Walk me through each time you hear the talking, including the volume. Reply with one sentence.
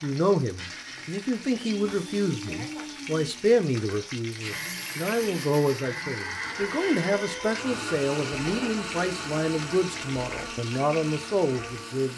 You can hear the talking from 0.0 to 12.1 s, at a steady volume.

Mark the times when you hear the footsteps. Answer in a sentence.
The footsteps can't be heard in this clip.